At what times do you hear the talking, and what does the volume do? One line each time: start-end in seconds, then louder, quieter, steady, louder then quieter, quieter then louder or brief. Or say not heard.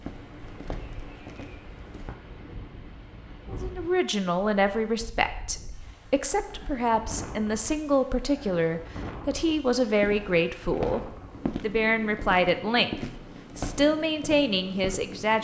3.5-15.3 steady.